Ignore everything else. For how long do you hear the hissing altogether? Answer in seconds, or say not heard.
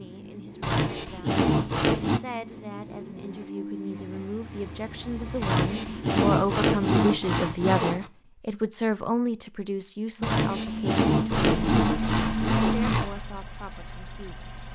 3 s.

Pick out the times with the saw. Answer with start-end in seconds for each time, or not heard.
0.6-2.2, 5.4-8.1, 10.2-13.1.